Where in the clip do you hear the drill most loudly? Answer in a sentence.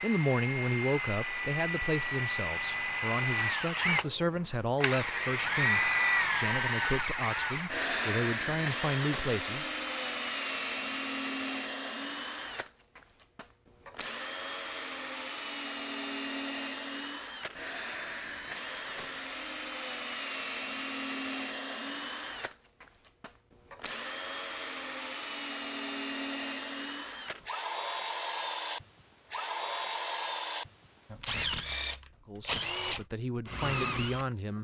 The loudest moment of the drill is at 6 seconds.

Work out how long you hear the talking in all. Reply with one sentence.
You can hear the talking for 12 seconds altogether.